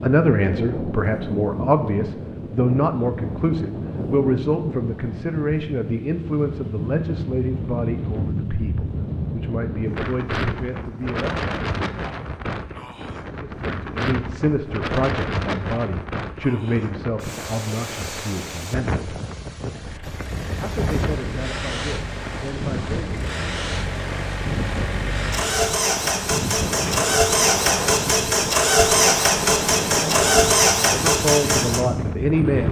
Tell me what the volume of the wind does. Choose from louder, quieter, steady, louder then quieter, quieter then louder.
steady.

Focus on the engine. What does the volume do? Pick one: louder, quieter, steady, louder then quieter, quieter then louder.
louder.